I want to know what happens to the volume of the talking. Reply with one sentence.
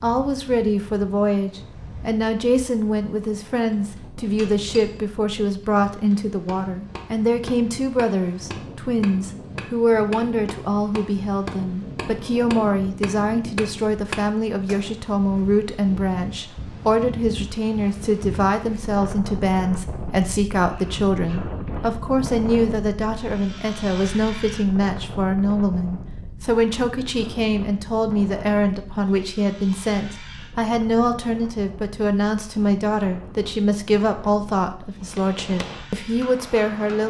The loudness of the talking stays about the same.